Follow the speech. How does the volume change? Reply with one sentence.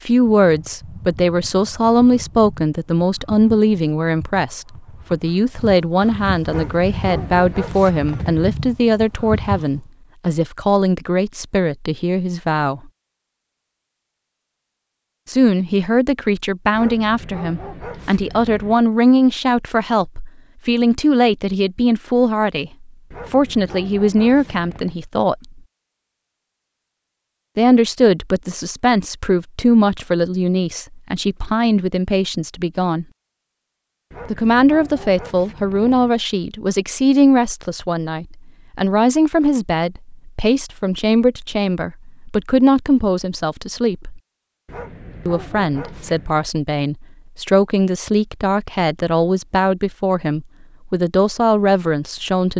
The volume of the speech stays about the same.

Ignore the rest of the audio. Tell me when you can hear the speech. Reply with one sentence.
The speech can be heard from 0.1 to 12.8 s, from 15.2 to 25.4 s, from 27.6 to 33.0 s, from 34.2 to 44.2 s and from 45.2 to 52.5 s.